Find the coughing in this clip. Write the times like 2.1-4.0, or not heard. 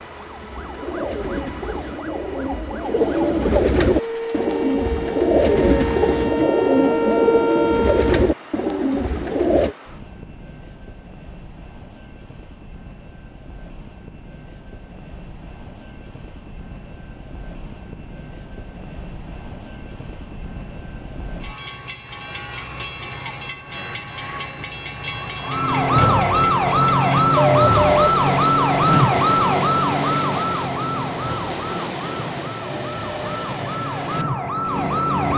not heard.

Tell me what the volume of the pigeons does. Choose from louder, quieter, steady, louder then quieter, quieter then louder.
louder.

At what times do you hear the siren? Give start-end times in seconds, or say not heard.
0.0-8.3, 25.4-35.3.